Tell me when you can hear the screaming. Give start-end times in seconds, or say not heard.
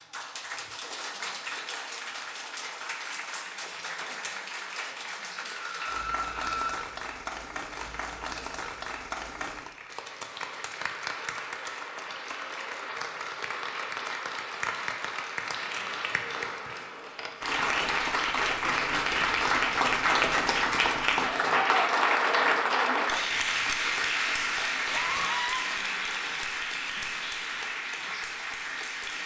5.5-6.8, 24.9-25.6.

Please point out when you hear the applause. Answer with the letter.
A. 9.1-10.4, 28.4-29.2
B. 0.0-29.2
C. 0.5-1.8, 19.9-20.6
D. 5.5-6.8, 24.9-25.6
B.